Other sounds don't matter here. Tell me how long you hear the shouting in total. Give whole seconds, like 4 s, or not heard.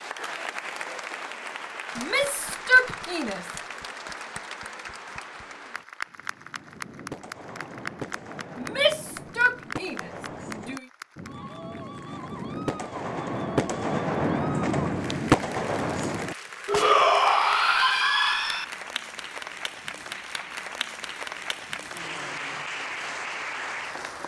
6 s.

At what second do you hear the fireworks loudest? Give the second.
15 s.